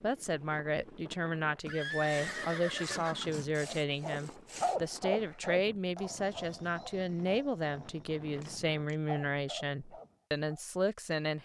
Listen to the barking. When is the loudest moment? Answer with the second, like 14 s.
5 s.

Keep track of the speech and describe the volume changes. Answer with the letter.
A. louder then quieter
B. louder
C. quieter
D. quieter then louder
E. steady
E.